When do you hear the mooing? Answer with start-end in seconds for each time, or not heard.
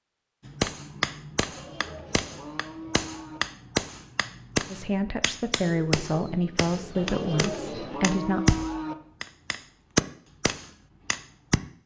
1.4-3.4, 7.0-8.9.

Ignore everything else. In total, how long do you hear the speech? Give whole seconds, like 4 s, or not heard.
4 s.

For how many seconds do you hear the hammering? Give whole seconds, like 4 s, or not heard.
11 s.